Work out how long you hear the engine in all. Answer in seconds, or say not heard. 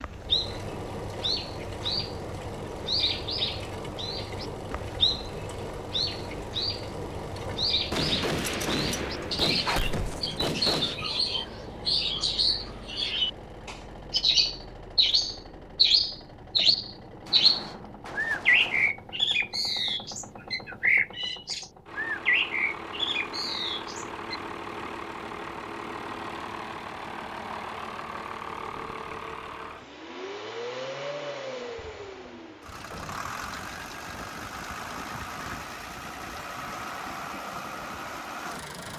39 s.